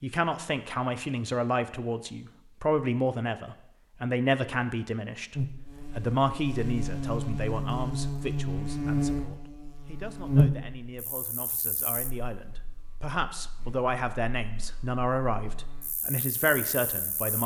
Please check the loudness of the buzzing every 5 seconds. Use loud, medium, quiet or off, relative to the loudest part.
off, loud, loud, quiet.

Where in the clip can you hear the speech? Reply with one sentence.
You can hear the speech from 0.0 to 17.4 s.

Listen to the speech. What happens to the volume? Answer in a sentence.
The volume of the speech goes down, then up.